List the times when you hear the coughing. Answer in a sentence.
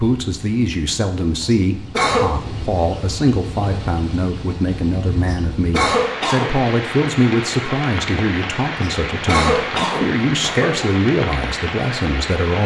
You can hear the coughing from 1.4 to 2.3 s, from 5.2 to 6.5 s and from 8.8 to 10.8 s.